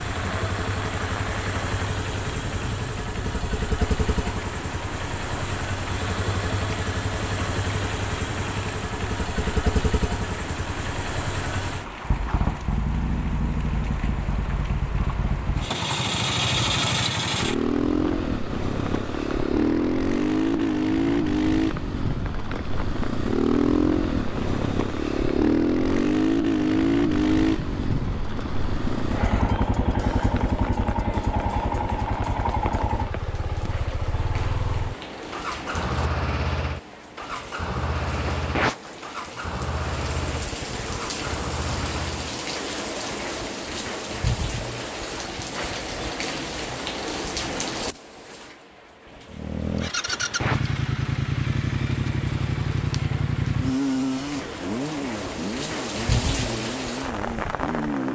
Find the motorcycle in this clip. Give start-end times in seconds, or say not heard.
0.0-42.4, 49.3-58.0.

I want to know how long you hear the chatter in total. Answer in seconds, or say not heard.
not heard.